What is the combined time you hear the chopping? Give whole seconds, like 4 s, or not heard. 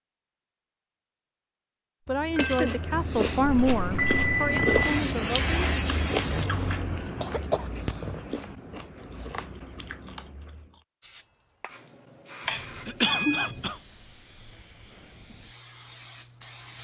not heard.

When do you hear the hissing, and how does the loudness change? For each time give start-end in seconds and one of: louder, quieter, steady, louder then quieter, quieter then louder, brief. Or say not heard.
4.8-6.5 brief
11.0-16.7 louder then quieter.